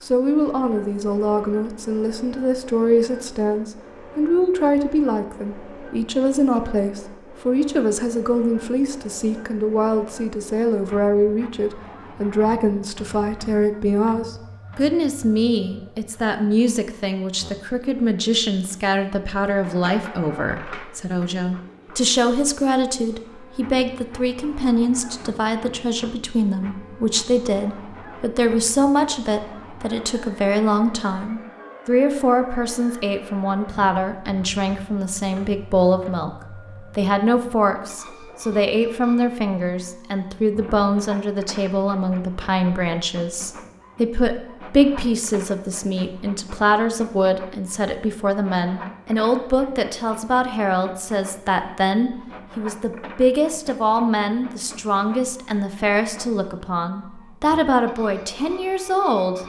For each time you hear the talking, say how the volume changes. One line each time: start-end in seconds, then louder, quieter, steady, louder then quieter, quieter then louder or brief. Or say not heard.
0.0-59.4 steady.